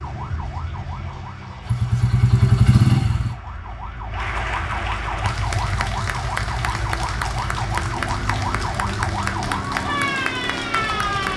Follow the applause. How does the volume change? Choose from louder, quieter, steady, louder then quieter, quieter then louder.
louder.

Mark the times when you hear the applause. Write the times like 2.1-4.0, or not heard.
0.0-11.3.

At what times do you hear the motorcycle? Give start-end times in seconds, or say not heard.
1.6-3.4, 5.2-11.3.